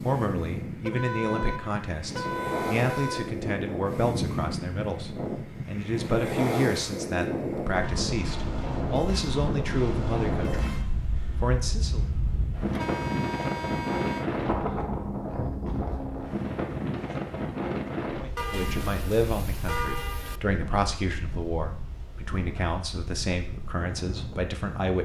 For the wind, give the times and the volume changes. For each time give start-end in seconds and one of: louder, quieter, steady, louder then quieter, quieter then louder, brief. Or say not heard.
0.0-25.0 quieter.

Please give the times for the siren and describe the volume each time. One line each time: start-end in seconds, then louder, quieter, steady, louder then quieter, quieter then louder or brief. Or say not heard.
not heard.